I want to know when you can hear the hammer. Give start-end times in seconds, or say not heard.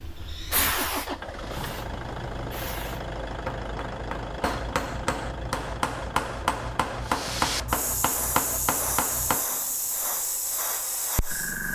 3.2-9.4.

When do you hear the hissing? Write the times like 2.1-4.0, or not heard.
0.0-3.1, 7.0-11.6.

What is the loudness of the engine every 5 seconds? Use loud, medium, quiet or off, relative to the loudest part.
loud, loud, off.